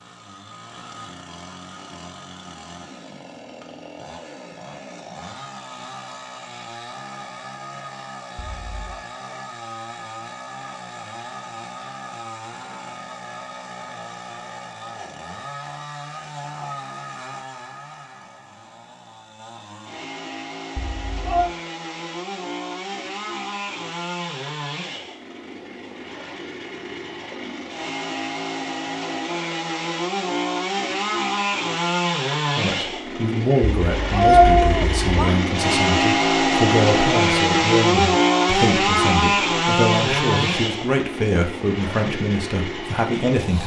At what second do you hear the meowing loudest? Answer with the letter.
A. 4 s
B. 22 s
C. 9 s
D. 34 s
D.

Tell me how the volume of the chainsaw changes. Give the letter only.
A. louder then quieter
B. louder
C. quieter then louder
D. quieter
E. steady
B.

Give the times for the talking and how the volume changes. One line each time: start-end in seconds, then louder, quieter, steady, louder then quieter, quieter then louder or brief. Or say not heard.
32.5-43.6 steady.